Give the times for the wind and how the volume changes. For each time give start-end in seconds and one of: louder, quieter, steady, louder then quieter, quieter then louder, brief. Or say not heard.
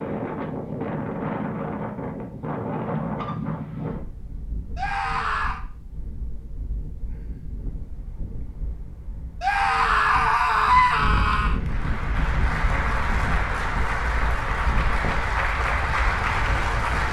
0.0-17.0 quieter then louder.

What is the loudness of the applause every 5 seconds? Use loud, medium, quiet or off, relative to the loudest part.
off, off, loud, loud.